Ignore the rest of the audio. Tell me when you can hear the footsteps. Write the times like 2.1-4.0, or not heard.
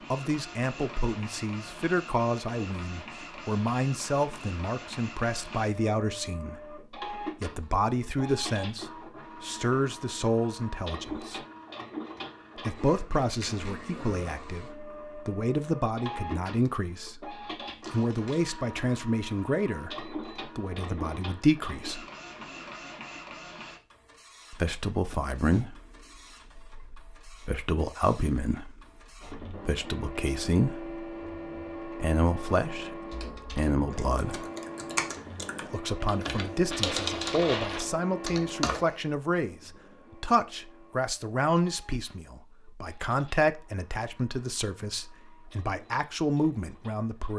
not heard.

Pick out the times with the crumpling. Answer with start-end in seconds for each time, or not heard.
13.1-13.8, 17.8-18.6, 36.6-37.9.